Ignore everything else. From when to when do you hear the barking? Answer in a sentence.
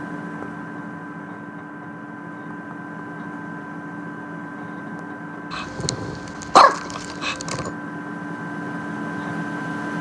You can hear the barking from 5.5 to 7.7 s.